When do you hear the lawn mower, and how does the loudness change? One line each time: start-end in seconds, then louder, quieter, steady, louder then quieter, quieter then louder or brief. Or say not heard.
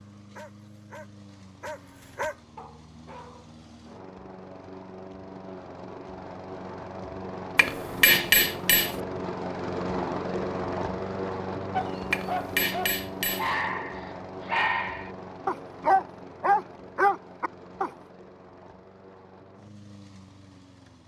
0.0-21.0 louder then quieter.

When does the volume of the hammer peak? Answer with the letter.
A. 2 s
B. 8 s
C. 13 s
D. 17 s
B.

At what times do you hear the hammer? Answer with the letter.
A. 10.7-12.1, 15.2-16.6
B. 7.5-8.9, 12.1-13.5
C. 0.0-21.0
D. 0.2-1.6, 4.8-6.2
B.